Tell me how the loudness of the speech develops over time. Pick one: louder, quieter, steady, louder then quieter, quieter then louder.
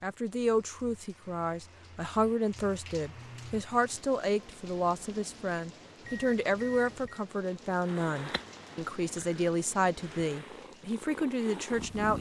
steady.